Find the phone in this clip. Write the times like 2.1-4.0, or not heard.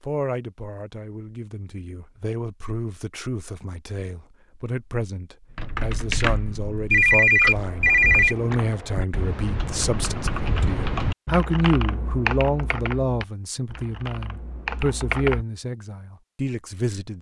6.9-8.3.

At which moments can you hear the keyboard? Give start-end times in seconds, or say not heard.
5.5-15.4.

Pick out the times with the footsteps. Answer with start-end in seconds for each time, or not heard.
not heard.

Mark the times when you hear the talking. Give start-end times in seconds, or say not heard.
0.0-17.1.